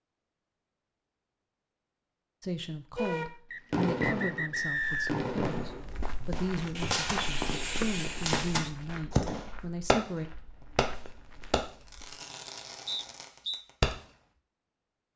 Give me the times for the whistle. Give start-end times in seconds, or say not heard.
3.5-5.2, 12.8-13.7.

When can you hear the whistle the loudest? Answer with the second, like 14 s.
5 s.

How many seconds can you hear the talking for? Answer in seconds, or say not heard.
8 s.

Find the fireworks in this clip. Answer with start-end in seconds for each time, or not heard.
3.0-10.0, 10.8-13.9.